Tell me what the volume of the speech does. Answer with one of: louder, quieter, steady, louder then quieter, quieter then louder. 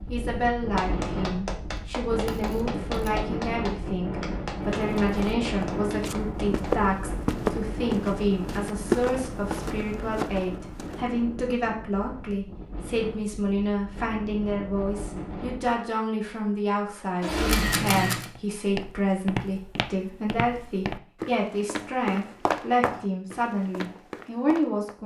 steady.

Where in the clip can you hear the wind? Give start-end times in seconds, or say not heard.
0.0-15.8.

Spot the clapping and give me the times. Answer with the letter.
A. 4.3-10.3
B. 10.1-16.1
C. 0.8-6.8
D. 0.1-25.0
C.